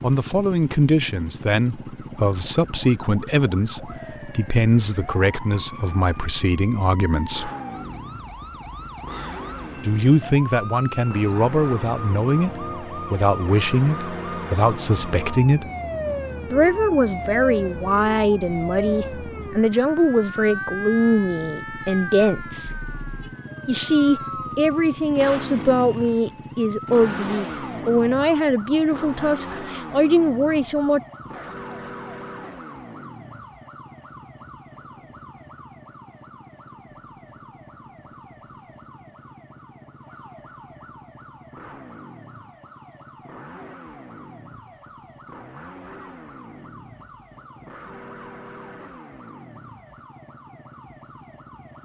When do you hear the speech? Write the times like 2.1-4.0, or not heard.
0.0-7.5, 9.8-15.7, 16.5-22.7, 23.6-31.0.